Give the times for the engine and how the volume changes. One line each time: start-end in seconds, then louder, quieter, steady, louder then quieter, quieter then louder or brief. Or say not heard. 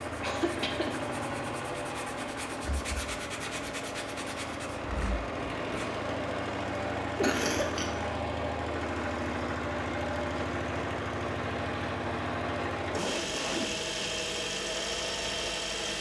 0.0-15.9 steady.